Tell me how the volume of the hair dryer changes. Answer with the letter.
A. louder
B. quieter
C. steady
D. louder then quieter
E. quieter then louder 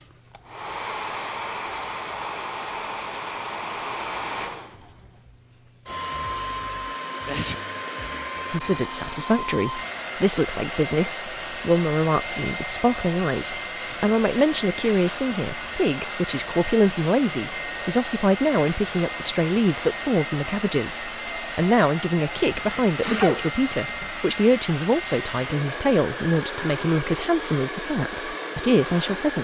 C.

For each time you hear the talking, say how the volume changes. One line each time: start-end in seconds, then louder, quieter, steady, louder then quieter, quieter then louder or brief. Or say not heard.
8.5-29.3 steady.